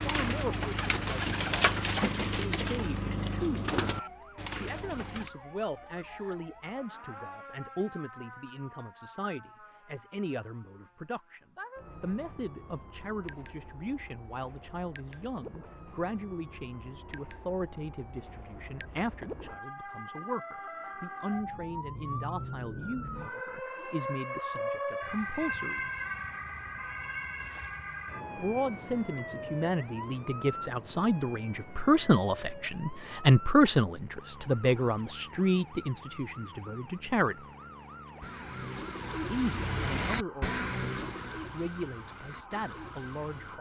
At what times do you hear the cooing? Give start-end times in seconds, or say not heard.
0.0-5.3, 38.2-43.5.